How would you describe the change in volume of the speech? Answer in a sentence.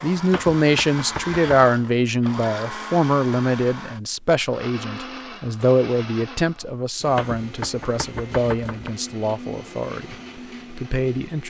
The volume of the speech goes down.